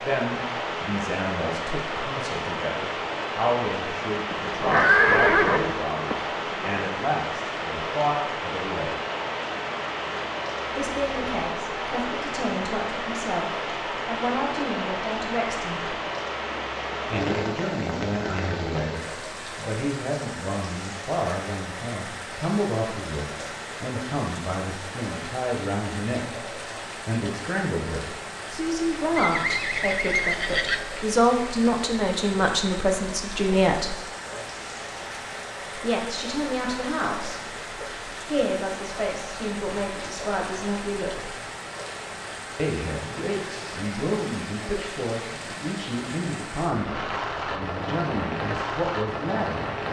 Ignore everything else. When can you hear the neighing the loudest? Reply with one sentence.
The volume of the neighing peaks at 5 seconds.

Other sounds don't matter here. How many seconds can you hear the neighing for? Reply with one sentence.
You can hear the neighing for 4 seconds altogether.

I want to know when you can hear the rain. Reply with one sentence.
You can hear the rain from 0.0 to 49.8 s.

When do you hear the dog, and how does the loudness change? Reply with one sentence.
You can't hear the dog here.